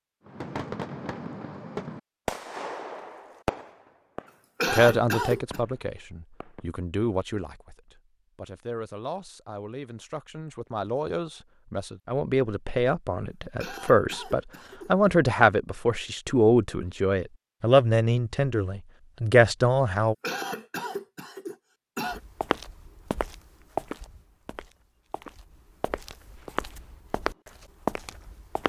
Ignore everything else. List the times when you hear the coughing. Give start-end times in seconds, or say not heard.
4.6-5.6, 13.6-14.9, 20.2-22.2.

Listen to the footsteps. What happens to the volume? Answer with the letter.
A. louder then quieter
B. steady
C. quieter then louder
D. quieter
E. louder
C.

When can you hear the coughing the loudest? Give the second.
5 s.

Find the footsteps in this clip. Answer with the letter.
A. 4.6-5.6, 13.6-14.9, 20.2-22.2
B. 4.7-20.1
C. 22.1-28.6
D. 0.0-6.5
C.